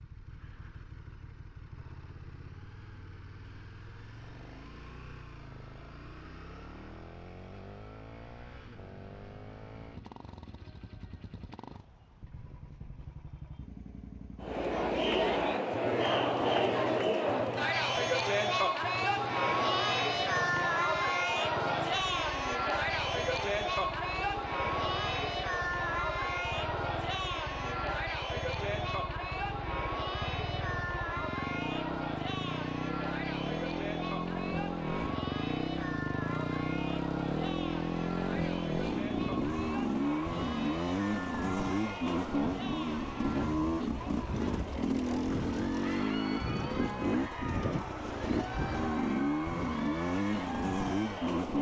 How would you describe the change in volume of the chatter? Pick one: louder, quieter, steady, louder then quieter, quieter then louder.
quieter.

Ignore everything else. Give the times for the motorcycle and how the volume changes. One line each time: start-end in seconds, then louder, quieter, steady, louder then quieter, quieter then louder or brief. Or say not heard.
0.0-51.5 louder.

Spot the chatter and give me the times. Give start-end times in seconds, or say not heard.
14.4-51.5.